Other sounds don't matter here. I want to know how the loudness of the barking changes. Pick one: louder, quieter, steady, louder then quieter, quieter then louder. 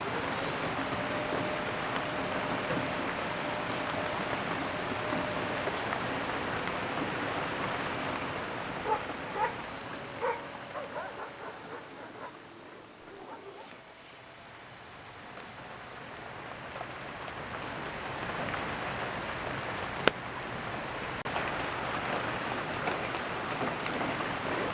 quieter.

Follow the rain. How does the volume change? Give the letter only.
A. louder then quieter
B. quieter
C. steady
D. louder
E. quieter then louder
E.